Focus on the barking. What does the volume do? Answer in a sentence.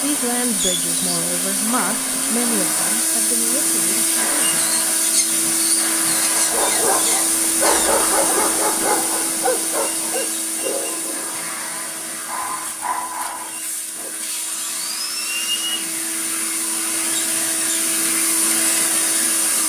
The loudness of the barking goes down, then up.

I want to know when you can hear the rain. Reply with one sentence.
The rain can't be heard in this clip.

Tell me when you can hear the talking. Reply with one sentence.
You can hear the talking from 0.0 to 4.7 s.